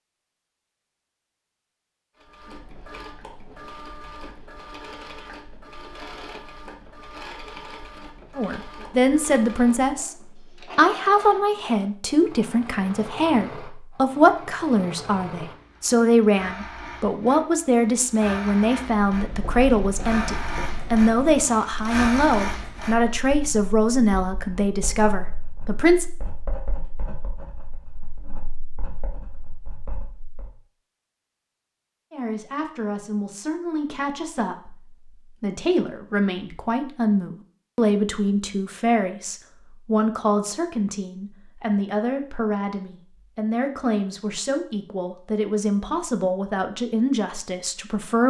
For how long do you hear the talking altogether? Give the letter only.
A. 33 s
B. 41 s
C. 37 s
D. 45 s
A.